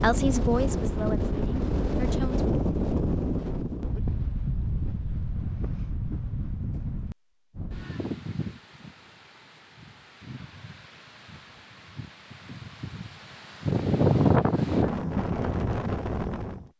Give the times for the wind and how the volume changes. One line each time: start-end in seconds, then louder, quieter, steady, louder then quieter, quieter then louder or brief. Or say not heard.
0.0-16.6 quieter then louder.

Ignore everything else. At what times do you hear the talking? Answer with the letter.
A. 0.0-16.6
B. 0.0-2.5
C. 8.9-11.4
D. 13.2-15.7
B.